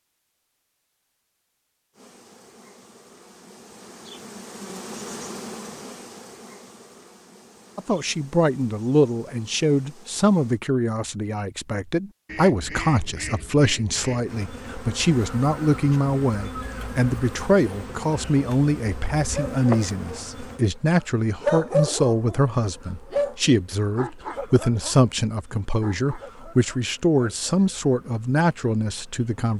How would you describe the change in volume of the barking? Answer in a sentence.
The loudness of the barking goes up, then down.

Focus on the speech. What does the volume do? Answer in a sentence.
The volume of the speech stays about the same.